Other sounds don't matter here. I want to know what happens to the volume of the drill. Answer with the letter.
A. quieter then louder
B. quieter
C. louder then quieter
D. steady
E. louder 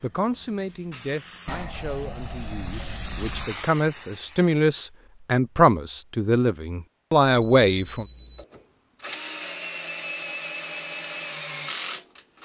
D.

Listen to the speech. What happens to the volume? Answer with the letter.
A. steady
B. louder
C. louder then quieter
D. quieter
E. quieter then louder
B.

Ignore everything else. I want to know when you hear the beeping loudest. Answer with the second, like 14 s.
8 s.